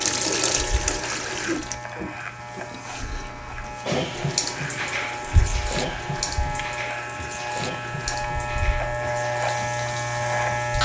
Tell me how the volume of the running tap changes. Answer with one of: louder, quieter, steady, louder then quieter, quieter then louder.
quieter.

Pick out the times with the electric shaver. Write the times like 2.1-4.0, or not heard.
0.0-10.7.